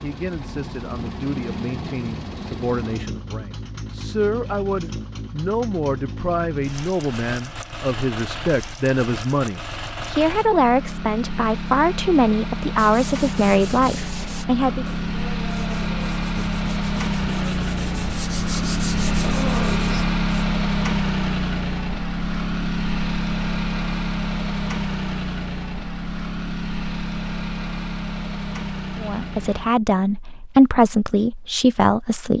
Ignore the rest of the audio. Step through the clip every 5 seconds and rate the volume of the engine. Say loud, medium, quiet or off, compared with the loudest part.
medium, medium, medium, loud, loud, medium, off.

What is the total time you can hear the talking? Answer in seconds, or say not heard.
18 s.